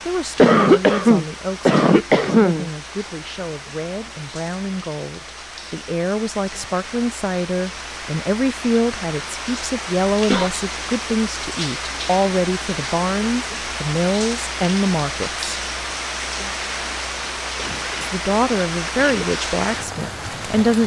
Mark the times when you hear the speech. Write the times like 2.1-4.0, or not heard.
0.1-15.5, 18.0-20.8.